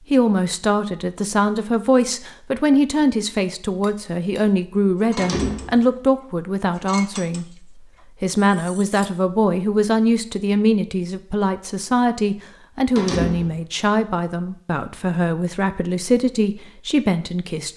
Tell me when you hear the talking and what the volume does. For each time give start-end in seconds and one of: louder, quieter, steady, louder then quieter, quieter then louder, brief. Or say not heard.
0.1-17.7 steady.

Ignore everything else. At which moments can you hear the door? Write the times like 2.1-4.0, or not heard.
5.2-5.8, 12.9-13.6.